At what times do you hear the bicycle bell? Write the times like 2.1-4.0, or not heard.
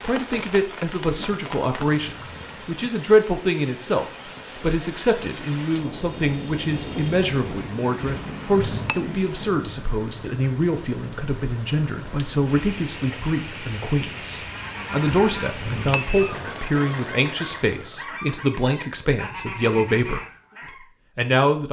8.0-8.9, 15.1-16.4.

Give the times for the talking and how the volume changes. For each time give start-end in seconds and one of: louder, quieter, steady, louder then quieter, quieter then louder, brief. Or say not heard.
0.0-20.2 steady
21.1-21.6 brief.